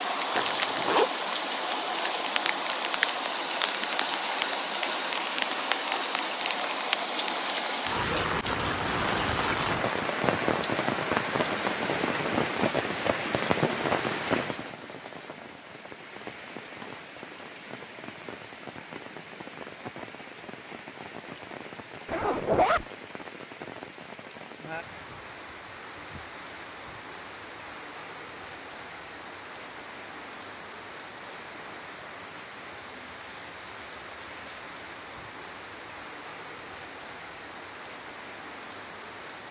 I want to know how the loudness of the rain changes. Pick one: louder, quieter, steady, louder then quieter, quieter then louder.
quieter.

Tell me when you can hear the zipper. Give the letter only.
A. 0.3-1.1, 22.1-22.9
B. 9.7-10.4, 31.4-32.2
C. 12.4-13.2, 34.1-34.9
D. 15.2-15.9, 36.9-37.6
A.